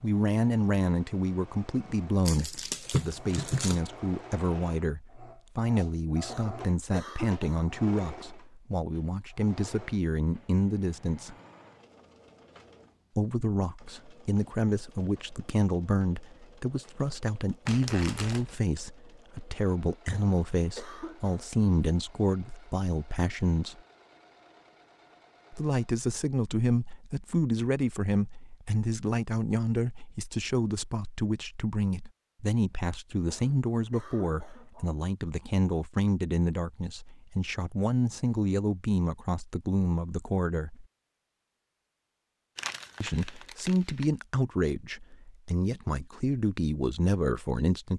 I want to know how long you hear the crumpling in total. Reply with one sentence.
You can hear the crumpling for 4 seconds altogether.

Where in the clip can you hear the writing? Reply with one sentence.
You can't hear the writing here.